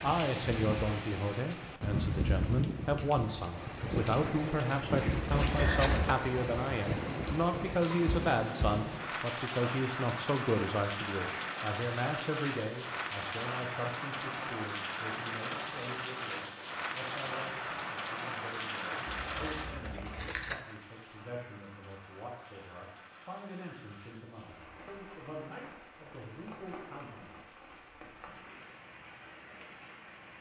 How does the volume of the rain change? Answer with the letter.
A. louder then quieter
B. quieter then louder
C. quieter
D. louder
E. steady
C.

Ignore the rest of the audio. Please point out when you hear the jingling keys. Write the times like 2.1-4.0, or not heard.
5.3-6.2, 19.3-20.6.